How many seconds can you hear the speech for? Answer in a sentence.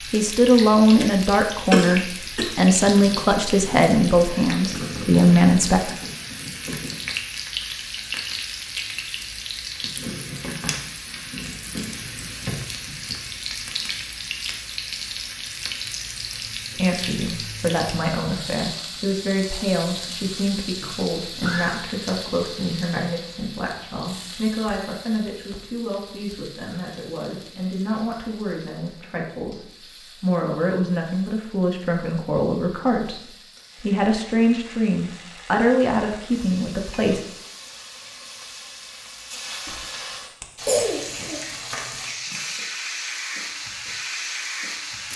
The speech can be heard for 26 seconds in total.